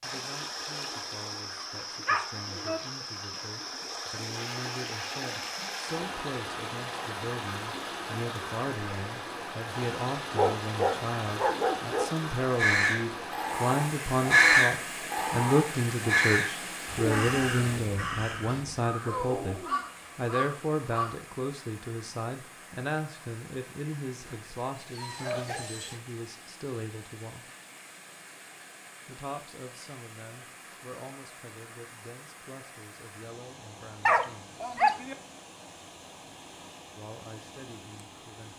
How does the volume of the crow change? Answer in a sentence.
The volume of the crow goes down.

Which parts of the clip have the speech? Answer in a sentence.
You can hear the speech from 0.0 to 27.5 s, from 29.1 to 34.6 s and from 37.0 to 38.5 s.